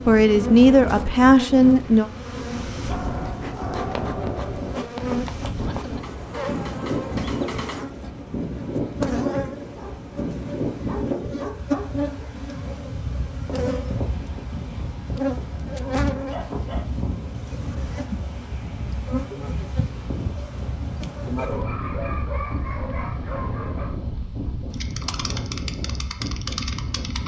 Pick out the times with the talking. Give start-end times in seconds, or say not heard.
0.0-2.1.